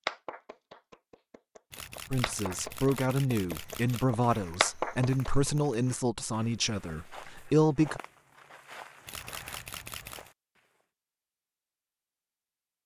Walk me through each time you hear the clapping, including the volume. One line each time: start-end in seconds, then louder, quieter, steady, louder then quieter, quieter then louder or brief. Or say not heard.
0.1-5.5 louder.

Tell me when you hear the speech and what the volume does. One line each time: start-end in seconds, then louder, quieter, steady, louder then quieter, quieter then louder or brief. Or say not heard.
2.1-8.0 steady.